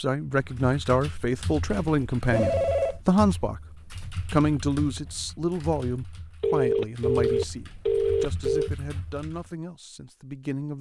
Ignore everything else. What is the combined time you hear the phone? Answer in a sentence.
The phone can be heard for 3 seconds in total.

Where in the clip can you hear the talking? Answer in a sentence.
You can hear the talking from 0.0 to 10.7 s.